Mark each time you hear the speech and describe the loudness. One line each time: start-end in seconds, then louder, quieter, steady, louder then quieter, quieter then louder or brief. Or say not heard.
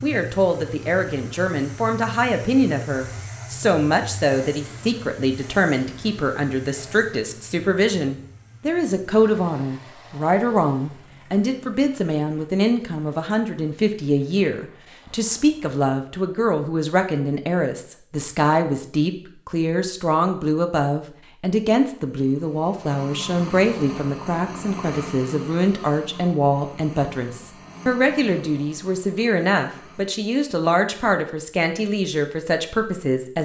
0.0-33.4 steady.